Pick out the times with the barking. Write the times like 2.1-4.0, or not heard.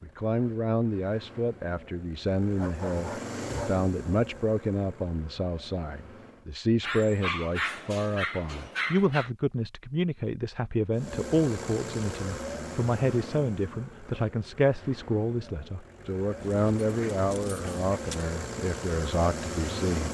2.5-3.9, 6.8-9.3, 16.4-18.2.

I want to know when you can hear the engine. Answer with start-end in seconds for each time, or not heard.
0.0-6.5, 10.9-20.0.